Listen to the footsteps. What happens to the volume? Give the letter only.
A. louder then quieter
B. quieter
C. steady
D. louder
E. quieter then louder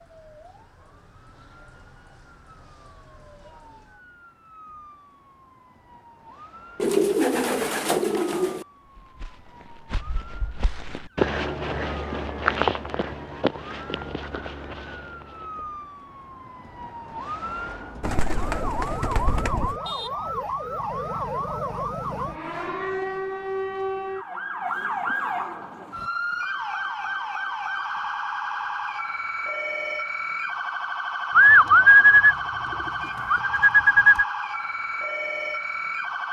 A.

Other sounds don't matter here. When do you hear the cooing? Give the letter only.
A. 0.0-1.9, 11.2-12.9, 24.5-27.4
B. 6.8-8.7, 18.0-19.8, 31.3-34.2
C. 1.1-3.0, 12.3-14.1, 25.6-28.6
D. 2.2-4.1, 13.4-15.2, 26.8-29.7
B.